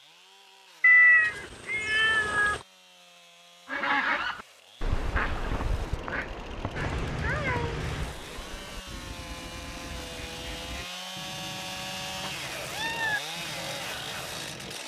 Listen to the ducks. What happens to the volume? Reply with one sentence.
The loudness of the ducks goes down.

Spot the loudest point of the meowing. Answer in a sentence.
The loudest moment of the meowing is at 1 second.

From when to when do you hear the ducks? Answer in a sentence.
You can hear the ducks from 3.6 to 14.8 s.